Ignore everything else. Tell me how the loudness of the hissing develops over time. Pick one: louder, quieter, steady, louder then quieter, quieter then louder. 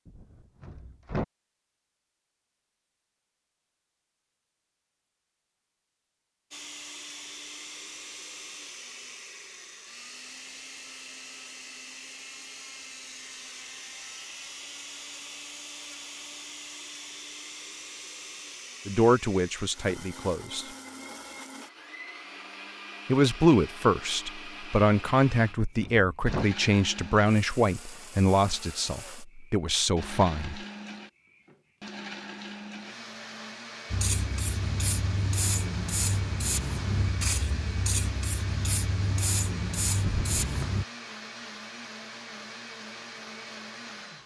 steady.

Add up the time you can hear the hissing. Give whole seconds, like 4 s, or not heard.
7 s.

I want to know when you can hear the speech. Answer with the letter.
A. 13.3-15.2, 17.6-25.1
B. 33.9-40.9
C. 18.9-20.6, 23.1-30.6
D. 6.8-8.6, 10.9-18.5
C.